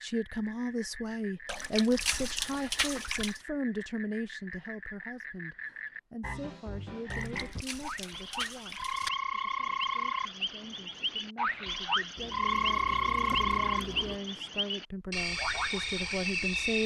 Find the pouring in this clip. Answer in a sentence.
The pouring can be heard from 1.4 to 3.4 s, from 7.1 to 9.1 s and from 12.2 to 14.2 s.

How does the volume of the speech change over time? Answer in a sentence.
The loudness of the speech goes down, then up.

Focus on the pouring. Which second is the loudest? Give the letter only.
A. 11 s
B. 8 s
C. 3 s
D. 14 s
C.